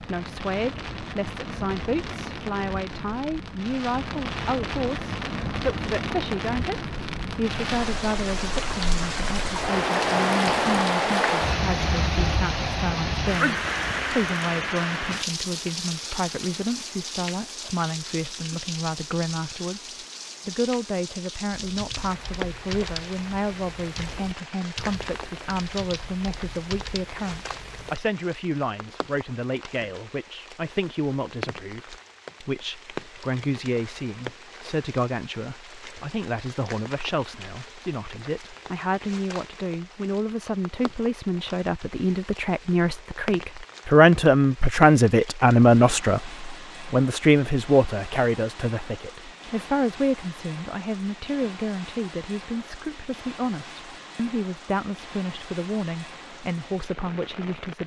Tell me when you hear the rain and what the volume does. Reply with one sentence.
The rain can be heard from 0.0 to 57.8 s, getting quieter.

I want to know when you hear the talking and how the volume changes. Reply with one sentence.
The talking can be heard from 0.0 to 6.8 s, at a steady volume; and from 7.3 to 57.8 s, getting louder then quieter.